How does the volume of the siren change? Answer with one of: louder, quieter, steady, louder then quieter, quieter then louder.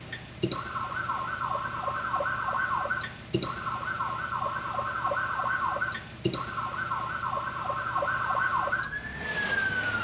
steady.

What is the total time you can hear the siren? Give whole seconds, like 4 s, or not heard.
10 s.